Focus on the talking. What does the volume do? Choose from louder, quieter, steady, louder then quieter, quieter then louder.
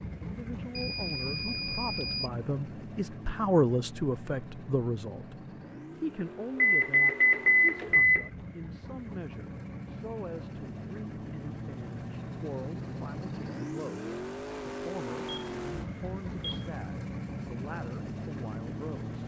louder then quieter.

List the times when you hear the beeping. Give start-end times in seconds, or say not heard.
0.8-2.3, 6.5-8.3, 15.2-16.8.